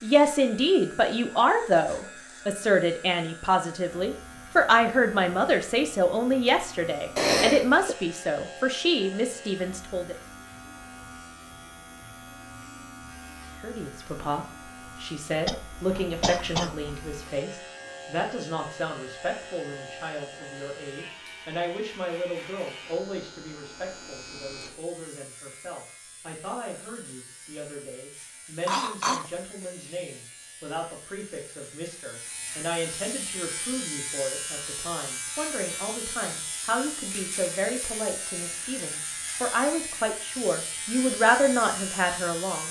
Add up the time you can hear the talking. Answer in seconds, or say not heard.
39 s.